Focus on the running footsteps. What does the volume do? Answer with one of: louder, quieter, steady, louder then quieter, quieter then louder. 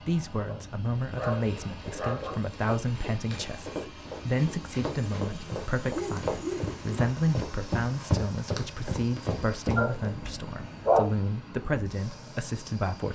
louder.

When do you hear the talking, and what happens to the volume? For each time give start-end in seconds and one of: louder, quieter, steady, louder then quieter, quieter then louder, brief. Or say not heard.
0.1-13.0 steady.